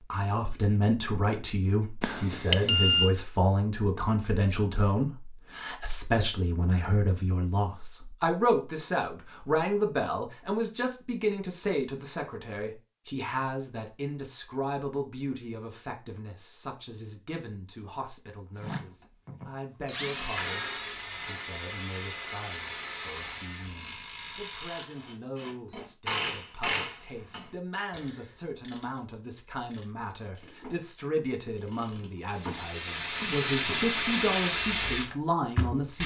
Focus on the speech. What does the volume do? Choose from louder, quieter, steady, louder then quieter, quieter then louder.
quieter then louder.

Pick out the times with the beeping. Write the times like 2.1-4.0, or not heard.
2.0-3.1.